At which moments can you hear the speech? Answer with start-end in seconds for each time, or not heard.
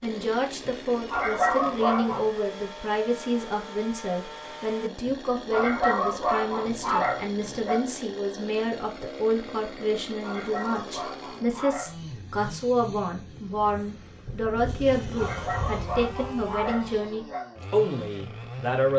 0.0-18.9.